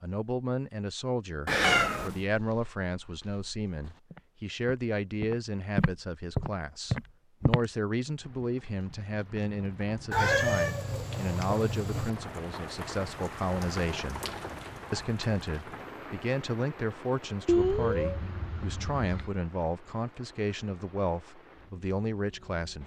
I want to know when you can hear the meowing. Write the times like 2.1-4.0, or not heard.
1.4-2.2, 10.1-12.1, 17.4-19.3.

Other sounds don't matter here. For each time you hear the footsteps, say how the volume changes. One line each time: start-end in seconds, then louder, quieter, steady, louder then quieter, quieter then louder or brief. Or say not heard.
2.2-7.7 louder.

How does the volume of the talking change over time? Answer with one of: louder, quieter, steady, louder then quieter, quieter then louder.
steady.